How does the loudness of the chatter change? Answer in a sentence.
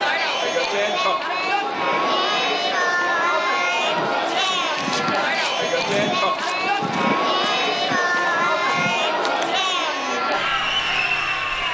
The volume of the chatter stays about the same.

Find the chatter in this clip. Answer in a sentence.
You can hear the chatter from 0.0 to 11.6 s.